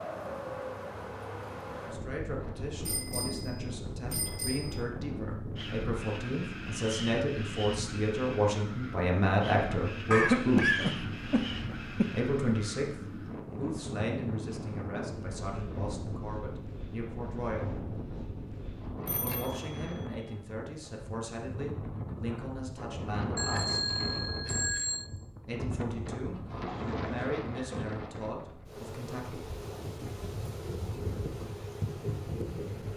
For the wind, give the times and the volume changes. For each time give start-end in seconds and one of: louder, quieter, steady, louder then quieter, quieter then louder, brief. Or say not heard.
0.0-32.9 steady.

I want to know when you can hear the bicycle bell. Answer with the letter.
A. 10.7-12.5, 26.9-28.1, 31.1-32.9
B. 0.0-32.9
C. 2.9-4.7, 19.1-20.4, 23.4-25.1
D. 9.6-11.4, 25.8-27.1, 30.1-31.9
C.